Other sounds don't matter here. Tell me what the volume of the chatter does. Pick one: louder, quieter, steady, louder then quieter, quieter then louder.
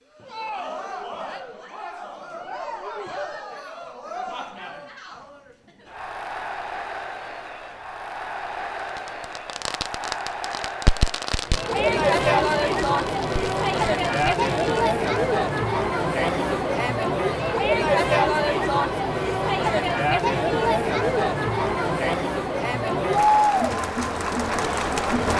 louder.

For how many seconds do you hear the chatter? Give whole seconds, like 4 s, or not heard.
25 s.